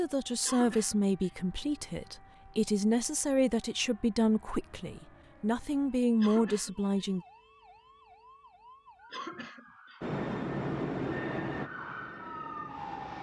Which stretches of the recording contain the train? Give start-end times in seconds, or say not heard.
10.0-13.1.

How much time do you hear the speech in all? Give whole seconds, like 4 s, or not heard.
7 s.